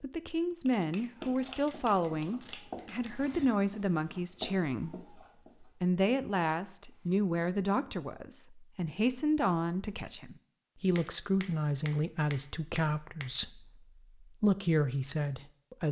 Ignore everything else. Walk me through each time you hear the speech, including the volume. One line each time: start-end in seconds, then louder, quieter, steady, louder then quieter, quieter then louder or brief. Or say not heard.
0.0-15.8 steady.